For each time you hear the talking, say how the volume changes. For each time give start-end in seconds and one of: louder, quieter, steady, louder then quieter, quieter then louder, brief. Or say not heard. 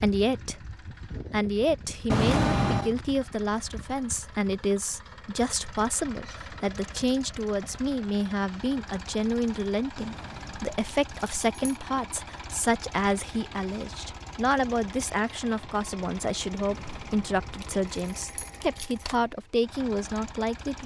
0.0-0.6 brief
1.3-20.8 steady.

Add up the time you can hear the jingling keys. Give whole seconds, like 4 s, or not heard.
5 s.